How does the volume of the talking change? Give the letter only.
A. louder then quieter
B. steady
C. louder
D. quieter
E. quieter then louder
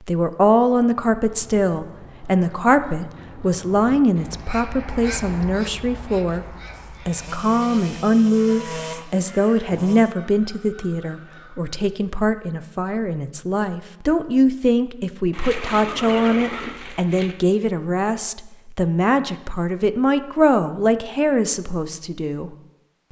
B.